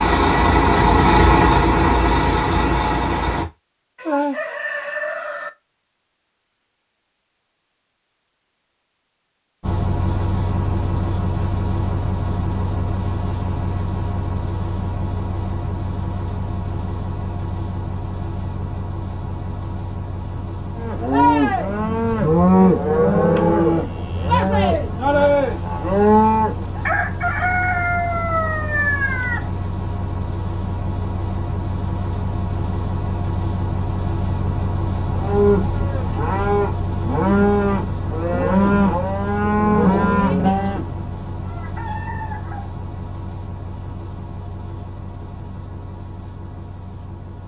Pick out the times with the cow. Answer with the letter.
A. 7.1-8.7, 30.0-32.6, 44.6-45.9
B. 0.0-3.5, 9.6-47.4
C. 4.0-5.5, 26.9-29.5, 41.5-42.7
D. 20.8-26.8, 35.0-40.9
D.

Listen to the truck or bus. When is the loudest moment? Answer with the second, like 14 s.
1 s.